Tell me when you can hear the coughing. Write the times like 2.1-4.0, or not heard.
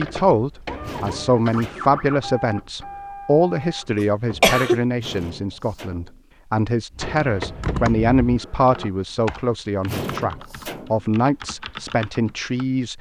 4.0-4.8.